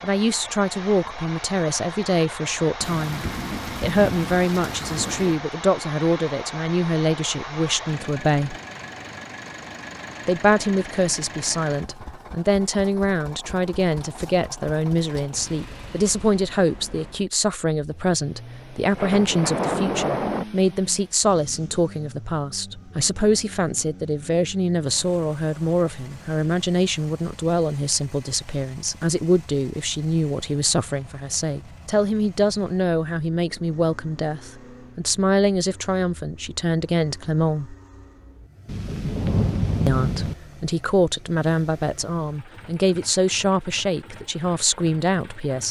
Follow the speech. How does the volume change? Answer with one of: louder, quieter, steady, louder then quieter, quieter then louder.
steady.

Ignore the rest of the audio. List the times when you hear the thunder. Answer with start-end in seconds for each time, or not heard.
2.8-5.4, 18.9-20.4, 38.6-40.4.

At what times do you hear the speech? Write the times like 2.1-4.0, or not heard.
0.0-8.6, 10.2-37.8, 39.9-45.6.